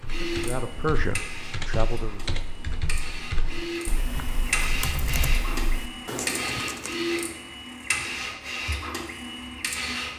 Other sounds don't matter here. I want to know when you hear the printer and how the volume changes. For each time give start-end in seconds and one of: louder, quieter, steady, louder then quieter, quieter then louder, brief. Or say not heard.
0.0-10.1 louder.